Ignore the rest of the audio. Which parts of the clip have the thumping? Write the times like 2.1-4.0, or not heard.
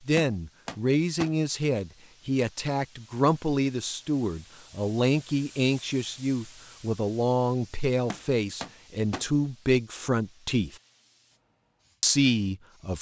0.1-1.4, 8.1-9.2.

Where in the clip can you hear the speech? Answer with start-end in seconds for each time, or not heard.
0.1-10.8, 12.0-12.9.